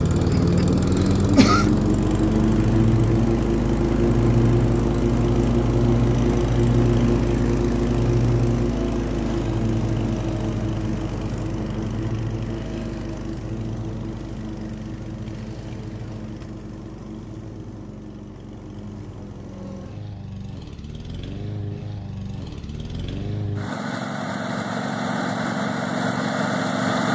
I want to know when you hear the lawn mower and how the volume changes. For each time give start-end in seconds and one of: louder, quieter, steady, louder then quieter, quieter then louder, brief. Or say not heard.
0.0-27.1 quieter then louder.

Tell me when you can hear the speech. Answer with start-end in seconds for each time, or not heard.
not heard.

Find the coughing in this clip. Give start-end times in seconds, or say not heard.
0.3-1.7.